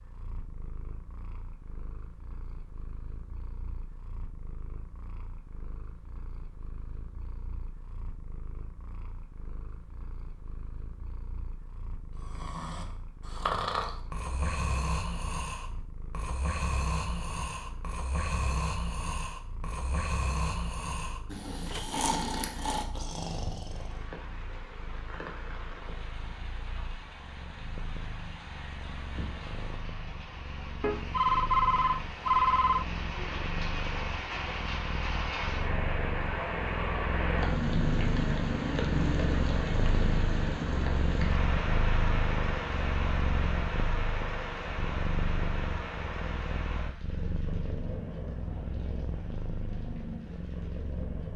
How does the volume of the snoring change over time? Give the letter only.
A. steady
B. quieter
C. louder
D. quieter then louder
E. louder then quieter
A.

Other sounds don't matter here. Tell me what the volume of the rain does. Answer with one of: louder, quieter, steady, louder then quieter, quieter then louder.
louder then quieter.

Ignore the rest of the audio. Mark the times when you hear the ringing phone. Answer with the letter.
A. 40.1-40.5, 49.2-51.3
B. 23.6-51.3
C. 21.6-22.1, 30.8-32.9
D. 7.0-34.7
C.